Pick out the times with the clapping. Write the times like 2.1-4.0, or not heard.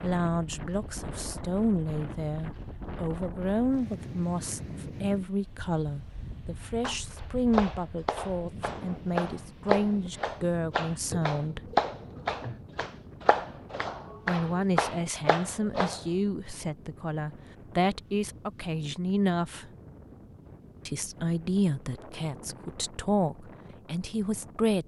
6.8-16.0.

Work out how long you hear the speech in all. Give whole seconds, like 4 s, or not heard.
21 s.